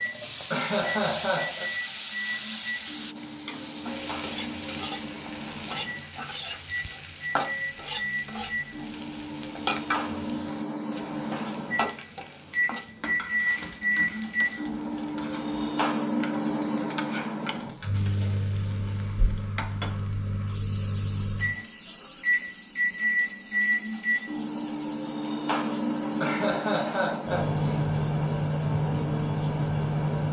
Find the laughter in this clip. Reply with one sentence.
The laughter can be heard from 0.5 to 1.6 s and from 26.2 to 27.8 s.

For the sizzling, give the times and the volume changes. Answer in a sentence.
The sizzling can be heard from 0.0 to 30.2 s, getting quieter.